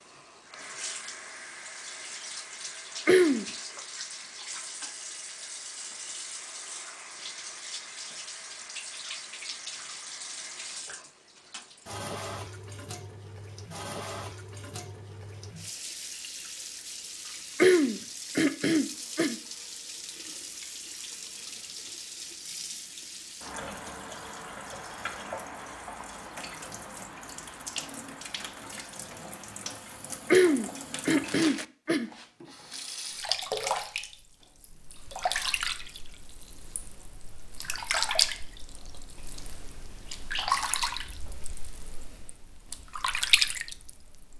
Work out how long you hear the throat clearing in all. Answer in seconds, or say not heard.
4 s.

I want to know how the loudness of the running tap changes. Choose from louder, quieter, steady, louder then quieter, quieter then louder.
louder.